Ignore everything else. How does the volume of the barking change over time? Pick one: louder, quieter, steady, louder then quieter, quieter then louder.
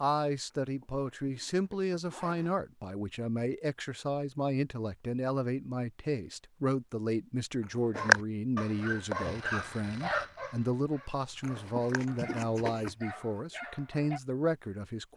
quieter then louder.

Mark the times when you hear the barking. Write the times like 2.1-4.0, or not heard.
8.0-14.2.